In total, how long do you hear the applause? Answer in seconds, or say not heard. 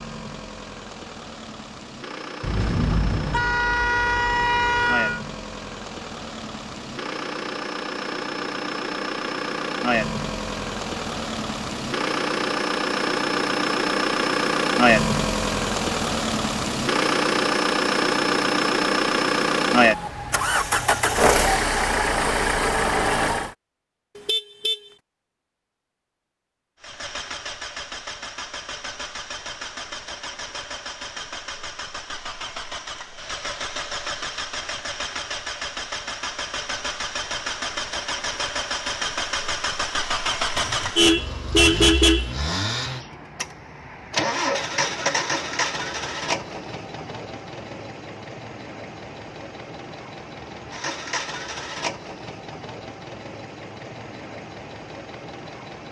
not heard.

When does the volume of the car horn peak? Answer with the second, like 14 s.
42 s.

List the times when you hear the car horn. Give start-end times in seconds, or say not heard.
2.4-5.2, 24.1-24.8, 40.5-42.4.